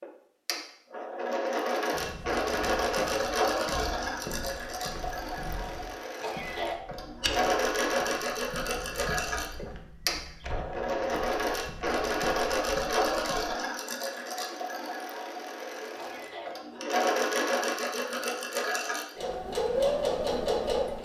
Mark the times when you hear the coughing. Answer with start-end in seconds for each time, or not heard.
6.2-6.8, 15.9-16.9.